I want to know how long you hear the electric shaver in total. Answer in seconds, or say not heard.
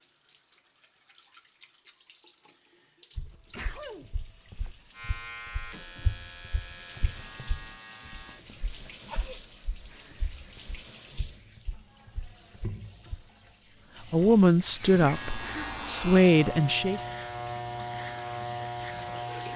8 s.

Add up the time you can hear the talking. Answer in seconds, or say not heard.
3 s.